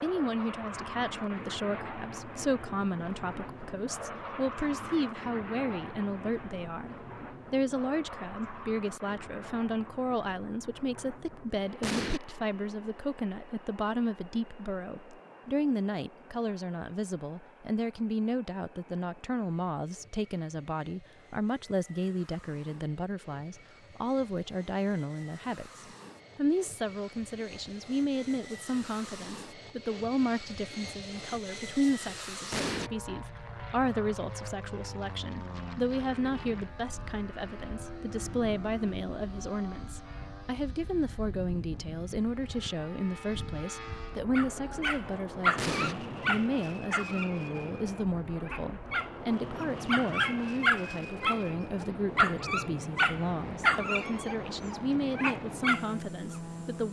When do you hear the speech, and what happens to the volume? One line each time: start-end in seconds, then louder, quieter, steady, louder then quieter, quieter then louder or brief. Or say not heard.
0.0-56.8 steady.